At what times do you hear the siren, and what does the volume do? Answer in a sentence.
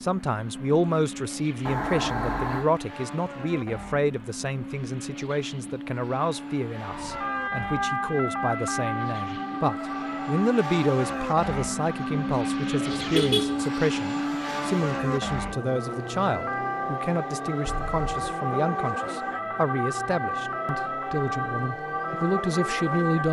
You can hear the siren from 6.8 to 23.2 s, getting quieter then louder.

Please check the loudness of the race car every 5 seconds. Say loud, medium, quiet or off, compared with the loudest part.
medium, medium, loud, medium, medium.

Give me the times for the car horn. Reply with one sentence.
You can hear the car horn from 1.6 to 2.7 s, from 12.9 to 13.6 s and from 17.6 to 18.4 s.